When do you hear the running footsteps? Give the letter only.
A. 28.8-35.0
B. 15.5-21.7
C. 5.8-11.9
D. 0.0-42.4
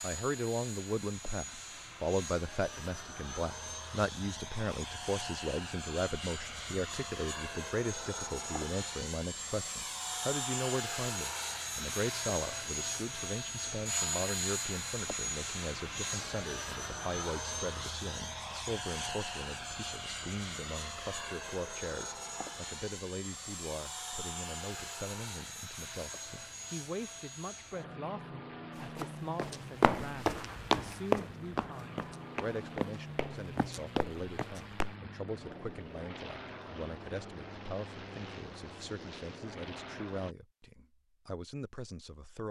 A.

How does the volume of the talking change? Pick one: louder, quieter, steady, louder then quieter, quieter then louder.
quieter.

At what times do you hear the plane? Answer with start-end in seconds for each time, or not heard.
0.0-40.4.